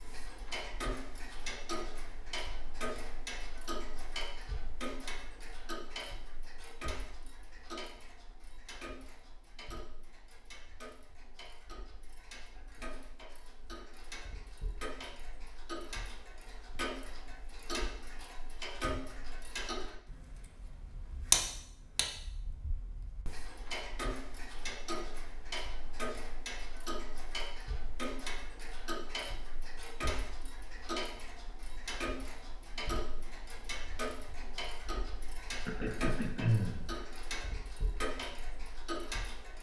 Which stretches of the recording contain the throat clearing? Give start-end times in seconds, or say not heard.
35.6-36.9.